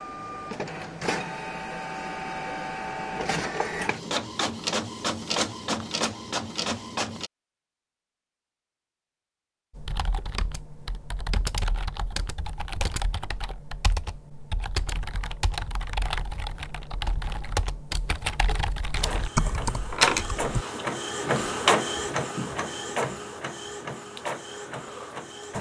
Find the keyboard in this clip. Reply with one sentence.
You can hear the keyboard from 9.8 to 20.6 s.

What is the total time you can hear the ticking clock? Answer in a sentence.
The ticking clock can't be heard in this clip.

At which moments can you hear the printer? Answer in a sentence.
You can hear the printer from 0.0 to 7.3 s and from 18.9 to 25.5 s.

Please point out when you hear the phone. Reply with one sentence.
You can't hear the phone here.